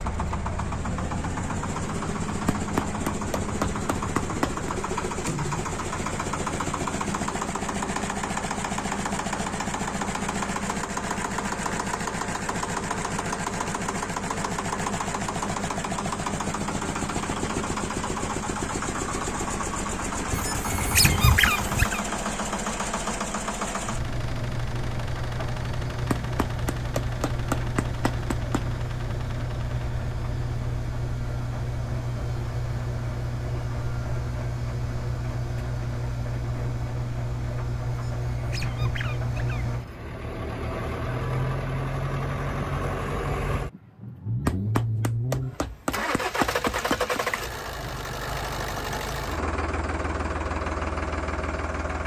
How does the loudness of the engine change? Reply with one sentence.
The loudness of the engine stays about the same.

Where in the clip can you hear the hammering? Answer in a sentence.
You can hear the hammering from 2.5 to 4.7 s, from 26.1 to 28.8 s and from 44.5 to 47.2 s.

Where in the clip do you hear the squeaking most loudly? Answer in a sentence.
The volume of the squeaking peaks at 21 seconds.